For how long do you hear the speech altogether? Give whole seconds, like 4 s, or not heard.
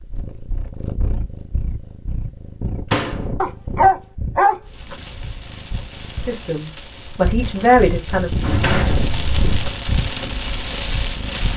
2 s.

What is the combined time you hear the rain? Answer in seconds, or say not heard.
7 s.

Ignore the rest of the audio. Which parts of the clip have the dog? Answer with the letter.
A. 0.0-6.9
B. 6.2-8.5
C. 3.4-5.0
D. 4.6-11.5
C.